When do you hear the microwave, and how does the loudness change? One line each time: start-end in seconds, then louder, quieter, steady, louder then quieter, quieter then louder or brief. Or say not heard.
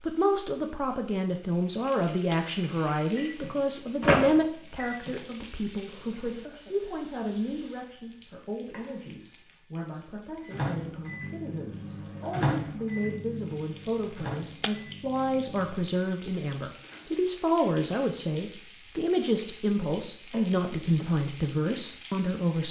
3.1-5.2 brief
10.4-15.8 louder then quieter.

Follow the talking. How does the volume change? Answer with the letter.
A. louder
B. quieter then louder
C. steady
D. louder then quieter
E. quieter
B.